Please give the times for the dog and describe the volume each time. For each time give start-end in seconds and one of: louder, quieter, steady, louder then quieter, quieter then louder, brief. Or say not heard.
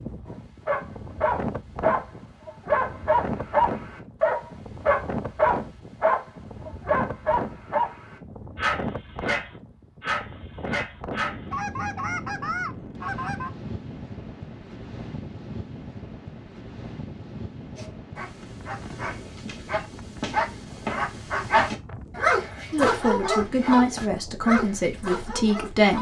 0.2-11.5 quieter
17.8-25.9 louder then quieter.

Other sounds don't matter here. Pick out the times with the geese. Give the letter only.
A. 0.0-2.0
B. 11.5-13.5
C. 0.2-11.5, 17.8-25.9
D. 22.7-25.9
B.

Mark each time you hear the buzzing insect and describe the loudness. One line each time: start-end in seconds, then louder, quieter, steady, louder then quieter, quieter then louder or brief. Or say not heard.
not heard.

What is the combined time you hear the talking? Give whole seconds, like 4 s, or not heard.
3 s.